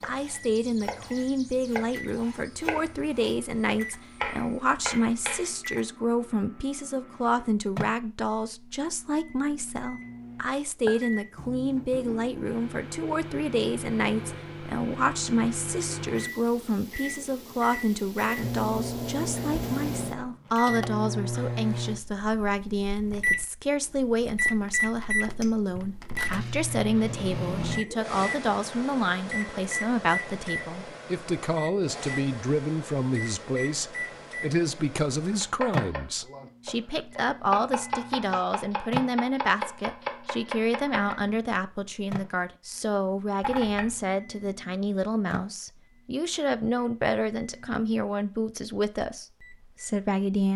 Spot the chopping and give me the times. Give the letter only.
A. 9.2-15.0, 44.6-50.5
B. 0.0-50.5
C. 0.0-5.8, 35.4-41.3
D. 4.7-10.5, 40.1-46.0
C.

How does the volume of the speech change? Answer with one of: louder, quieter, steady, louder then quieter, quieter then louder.
steady.